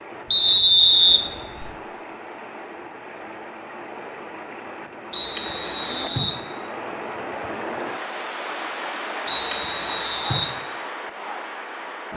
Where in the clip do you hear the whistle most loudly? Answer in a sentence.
The volume of the whistle peaks at 1 second.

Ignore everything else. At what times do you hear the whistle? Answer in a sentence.
You can hear the whistle from 0.3 to 1.7 s, from 5.1 to 6.4 s and from 9.2 to 10.6 s.